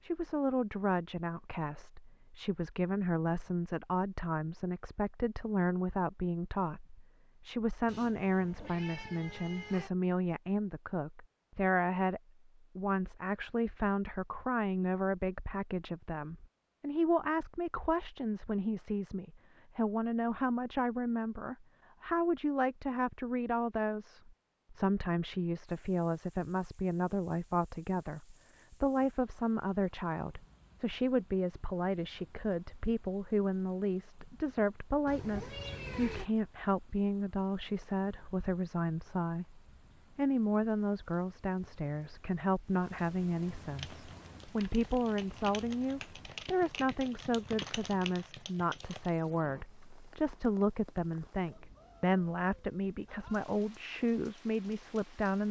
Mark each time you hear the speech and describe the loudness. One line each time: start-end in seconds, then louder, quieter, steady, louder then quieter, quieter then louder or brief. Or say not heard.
0.0-55.4 steady.